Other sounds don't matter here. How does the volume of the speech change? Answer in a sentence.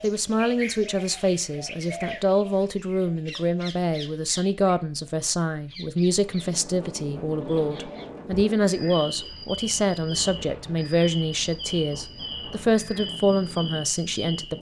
The loudness of the speech stays about the same.